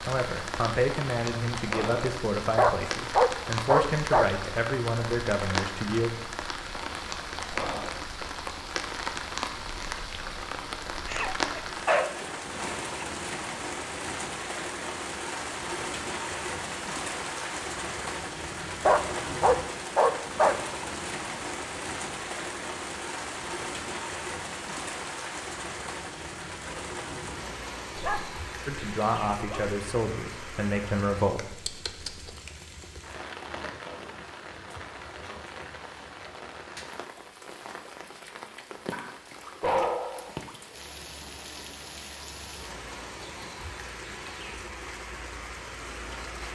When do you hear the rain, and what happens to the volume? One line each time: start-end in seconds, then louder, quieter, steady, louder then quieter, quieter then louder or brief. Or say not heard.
0.0-46.5 quieter.